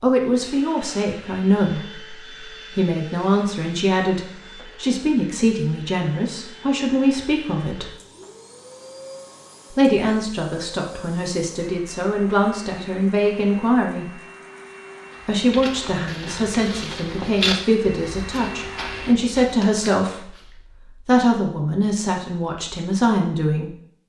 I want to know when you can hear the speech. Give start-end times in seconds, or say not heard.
0.0-7.9, 9.7-14.2, 15.2-20.4, 21.1-23.8.